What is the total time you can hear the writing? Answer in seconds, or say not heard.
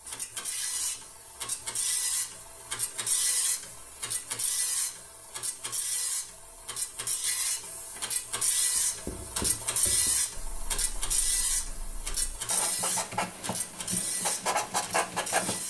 7 s.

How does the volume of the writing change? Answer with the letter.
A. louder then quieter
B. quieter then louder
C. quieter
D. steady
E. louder
B.